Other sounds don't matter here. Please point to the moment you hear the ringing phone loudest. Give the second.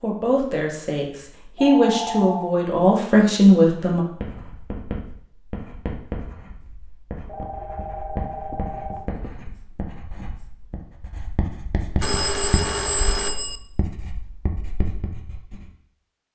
13 s.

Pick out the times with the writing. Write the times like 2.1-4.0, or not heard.
4.0-15.7.